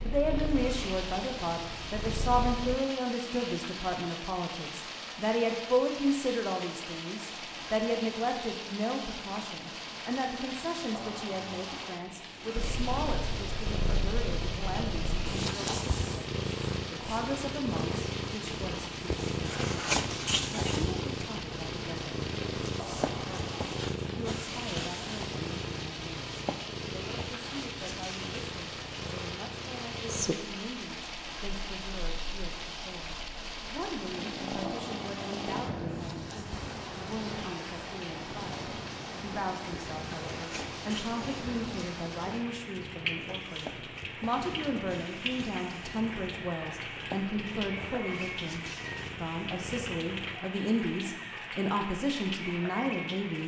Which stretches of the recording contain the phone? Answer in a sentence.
You can't hear the phone here.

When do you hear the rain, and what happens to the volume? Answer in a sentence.
You can hear the rain from 0.0 to 53.4 s, at a steady volume.